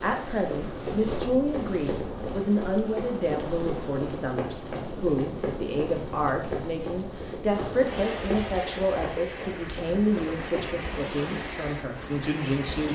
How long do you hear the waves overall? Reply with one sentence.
The waves can be heard for 13 seconds in total.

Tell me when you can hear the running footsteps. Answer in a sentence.
The running footsteps can be heard from 0.1 to 10.7 s.